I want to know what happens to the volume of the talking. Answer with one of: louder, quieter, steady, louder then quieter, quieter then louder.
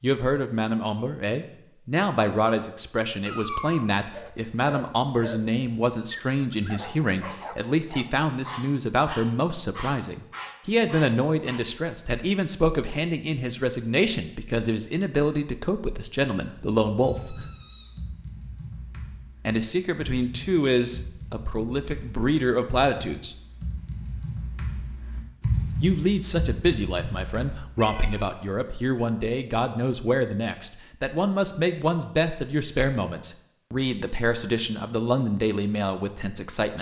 steady.